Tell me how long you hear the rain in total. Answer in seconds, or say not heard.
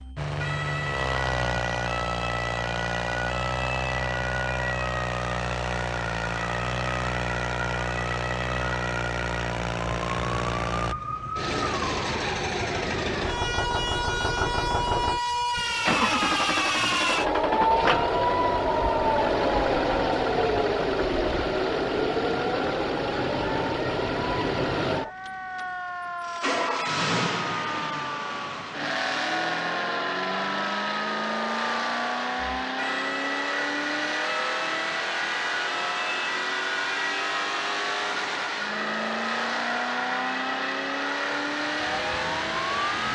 not heard.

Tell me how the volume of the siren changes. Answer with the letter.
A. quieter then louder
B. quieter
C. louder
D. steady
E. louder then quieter
E.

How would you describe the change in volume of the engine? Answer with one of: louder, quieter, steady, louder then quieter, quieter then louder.
steady.